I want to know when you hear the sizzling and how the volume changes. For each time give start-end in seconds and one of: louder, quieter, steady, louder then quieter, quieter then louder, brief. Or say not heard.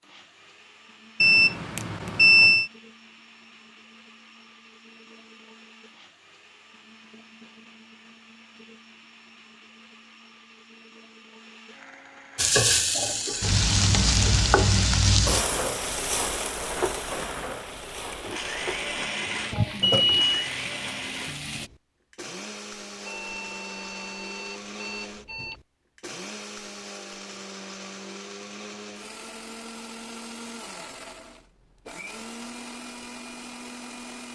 12.3-21.7 quieter.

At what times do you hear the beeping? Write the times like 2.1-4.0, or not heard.
1.2-2.7, 19.5-20.5, 23.0-25.6.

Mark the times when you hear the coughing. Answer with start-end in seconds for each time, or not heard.
not heard.